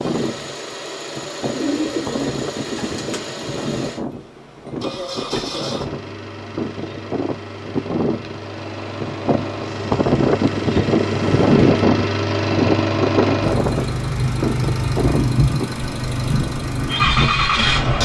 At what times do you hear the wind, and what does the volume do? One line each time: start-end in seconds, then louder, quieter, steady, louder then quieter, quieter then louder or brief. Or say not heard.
0.0-17.8 louder then quieter.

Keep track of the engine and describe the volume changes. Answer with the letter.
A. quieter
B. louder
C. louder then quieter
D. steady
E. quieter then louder
B.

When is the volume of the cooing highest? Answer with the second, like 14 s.
2 s.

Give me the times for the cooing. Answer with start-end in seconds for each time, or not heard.
1.5-3.3.